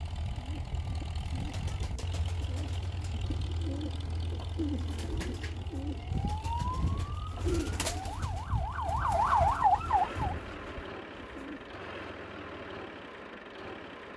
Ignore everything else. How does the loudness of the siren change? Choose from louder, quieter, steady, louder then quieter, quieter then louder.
quieter then louder.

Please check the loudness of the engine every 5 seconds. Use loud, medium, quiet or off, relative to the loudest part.
loud, medium, loud.